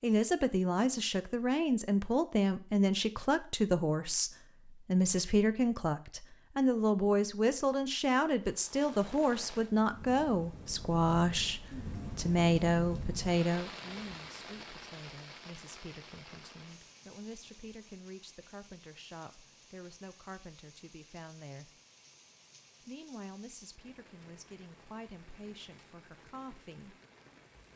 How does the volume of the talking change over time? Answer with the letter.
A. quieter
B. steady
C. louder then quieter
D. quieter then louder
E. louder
A.